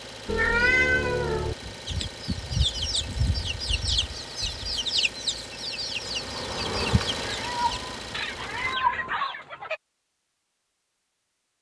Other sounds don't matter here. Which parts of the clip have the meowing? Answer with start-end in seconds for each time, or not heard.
0.2-1.6, 7.2-9.2.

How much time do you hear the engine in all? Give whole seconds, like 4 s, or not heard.
9 s.